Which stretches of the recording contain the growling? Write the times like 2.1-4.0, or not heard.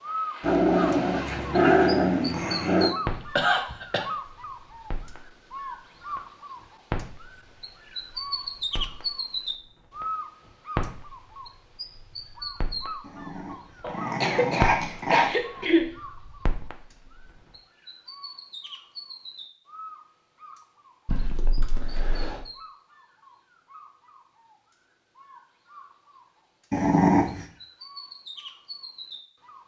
0.4-3.0, 13.1-15.3, 26.7-27.4.